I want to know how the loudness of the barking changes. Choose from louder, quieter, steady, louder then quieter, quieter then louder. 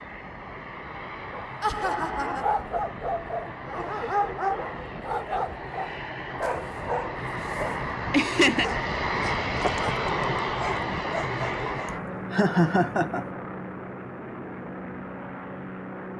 quieter.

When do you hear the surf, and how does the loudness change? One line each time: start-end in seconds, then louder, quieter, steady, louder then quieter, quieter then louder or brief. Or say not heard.
not heard.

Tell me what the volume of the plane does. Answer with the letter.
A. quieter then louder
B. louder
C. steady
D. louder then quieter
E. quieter
D.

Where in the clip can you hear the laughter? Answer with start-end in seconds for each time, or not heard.
1.6-2.5, 7.8-8.7, 12.3-13.2.